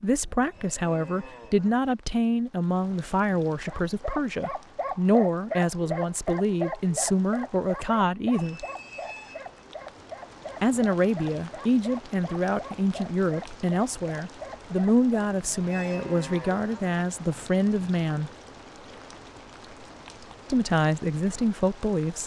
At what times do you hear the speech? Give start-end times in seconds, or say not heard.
0.0-8.7, 10.6-18.3, 20.5-22.2.